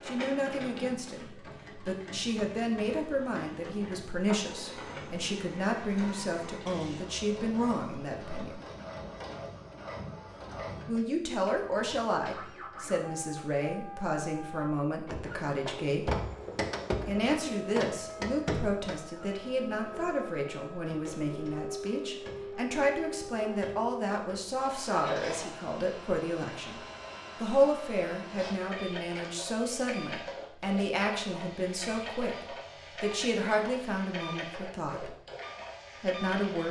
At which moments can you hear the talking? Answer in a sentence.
The talking can be heard from 0.1 to 8.6 s, from 10.8 to 16.1 s, from 17.1 to 35.1 s and from 36.0 to 36.6 s.